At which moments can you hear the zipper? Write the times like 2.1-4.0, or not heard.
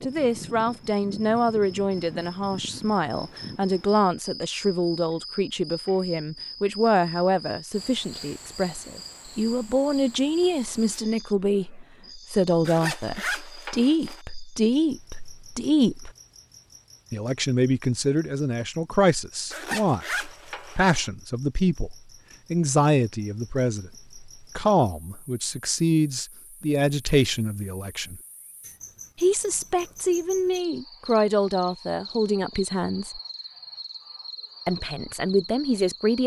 12.7-14.2, 19.5-21.1.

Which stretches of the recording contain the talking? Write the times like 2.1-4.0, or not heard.
0.0-16.1, 17.1-28.2, 29.1-33.2, 34.6-36.2.